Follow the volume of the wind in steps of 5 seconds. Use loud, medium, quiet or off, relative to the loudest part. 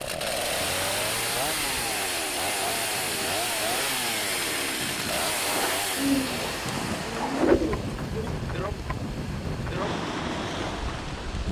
medium, loud, loud.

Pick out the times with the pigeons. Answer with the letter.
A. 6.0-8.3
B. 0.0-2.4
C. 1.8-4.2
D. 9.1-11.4
A.